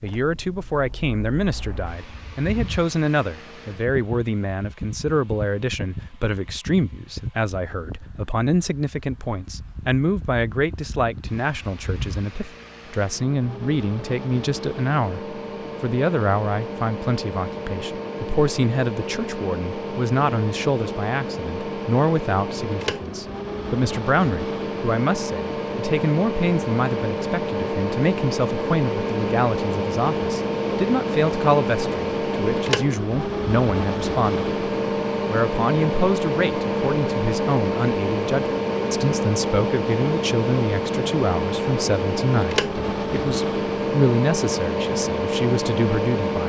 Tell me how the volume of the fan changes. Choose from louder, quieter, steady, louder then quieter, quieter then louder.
louder.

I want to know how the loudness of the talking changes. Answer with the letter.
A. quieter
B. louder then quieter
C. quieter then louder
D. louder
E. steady
E.